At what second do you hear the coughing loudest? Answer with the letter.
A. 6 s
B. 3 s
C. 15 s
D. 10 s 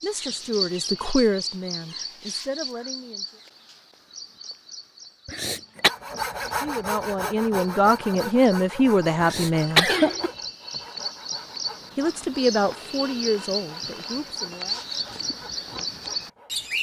D.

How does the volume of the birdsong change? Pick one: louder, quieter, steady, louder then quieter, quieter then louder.
quieter then louder.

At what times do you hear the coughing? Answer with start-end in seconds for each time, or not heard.
5.2-5.9, 9.2-10.3.